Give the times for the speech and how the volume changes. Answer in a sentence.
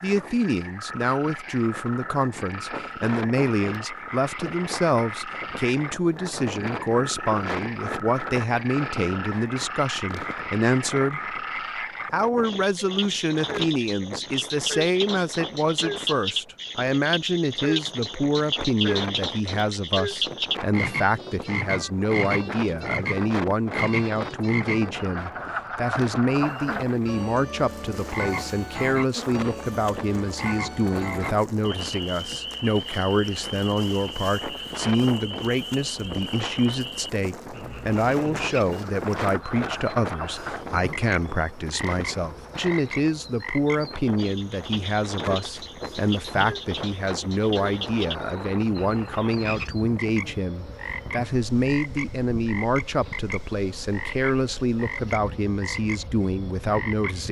You can hear the speech from 0.0 to 11.3 s, at a steady volume; and from 12.1 to 57.2 s, at a steady volume.